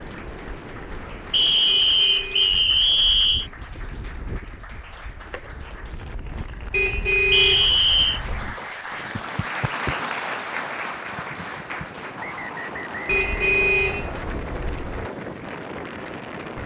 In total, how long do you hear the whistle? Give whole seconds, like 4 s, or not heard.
5 s.